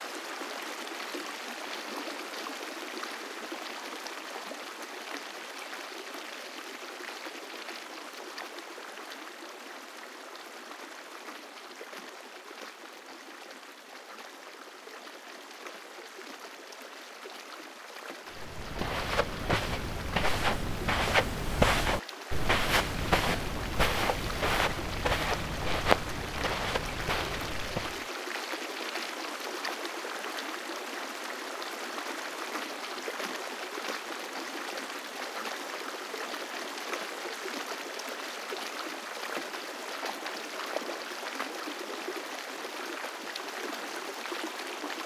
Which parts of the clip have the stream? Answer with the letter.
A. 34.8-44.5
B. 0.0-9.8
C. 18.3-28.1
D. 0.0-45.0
D.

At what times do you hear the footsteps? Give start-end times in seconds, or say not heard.
18.3-28.1.